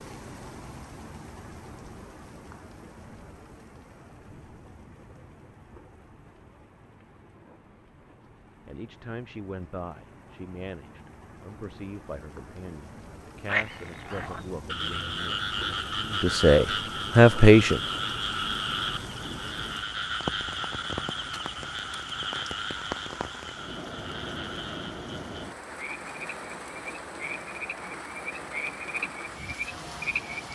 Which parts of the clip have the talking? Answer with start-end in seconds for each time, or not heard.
8.7-17.8.